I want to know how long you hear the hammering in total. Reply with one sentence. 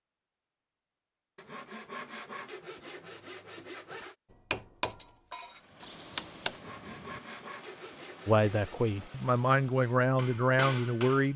The hammering can be heard for 4 seconds in total.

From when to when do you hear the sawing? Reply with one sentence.
You can hear the sawing from 1.4 to 4.2 s and from 6.5 to 8.9 s.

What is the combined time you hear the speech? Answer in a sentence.
The speech can be heard for 3 seconds in total.